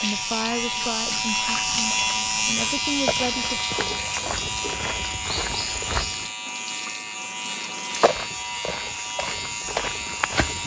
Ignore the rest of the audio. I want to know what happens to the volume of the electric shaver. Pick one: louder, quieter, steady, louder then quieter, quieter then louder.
quieter.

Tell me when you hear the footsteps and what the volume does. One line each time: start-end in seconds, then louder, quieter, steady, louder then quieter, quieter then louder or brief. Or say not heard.
1.2-6.3 louder
7.9-10.6 brief.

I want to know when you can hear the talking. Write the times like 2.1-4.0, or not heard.
0.0-3.6.